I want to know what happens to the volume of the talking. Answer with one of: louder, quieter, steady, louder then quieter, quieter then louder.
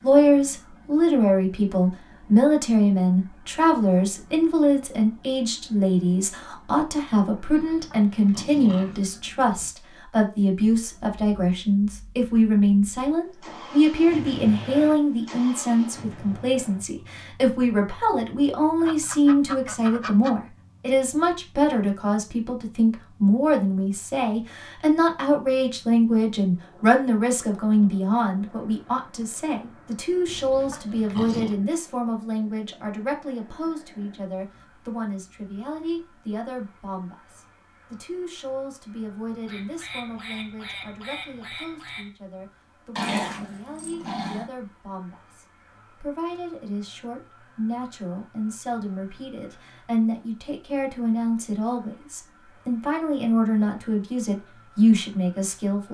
quieter then louder.